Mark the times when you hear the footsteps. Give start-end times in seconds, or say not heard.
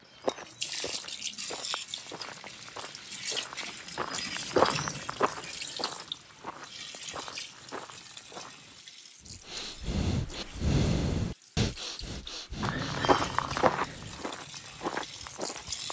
0.0-8.8, 12.6-15.8.